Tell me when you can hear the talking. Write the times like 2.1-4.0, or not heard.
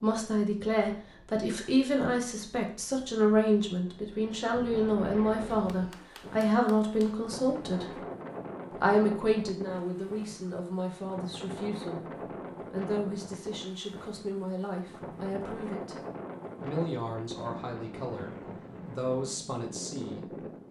0.0-8.0, 8.7-16.0, 16.6-20.6.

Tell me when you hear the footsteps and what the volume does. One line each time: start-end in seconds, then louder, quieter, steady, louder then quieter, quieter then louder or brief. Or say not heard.
not heard.